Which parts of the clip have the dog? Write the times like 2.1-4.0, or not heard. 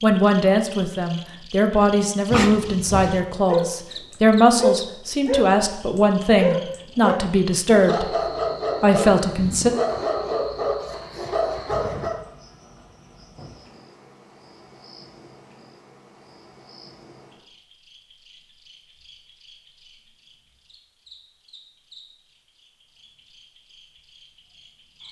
1.9-12.2.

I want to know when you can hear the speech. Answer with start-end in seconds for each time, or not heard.
0.0-8.1, 8.8-9.7.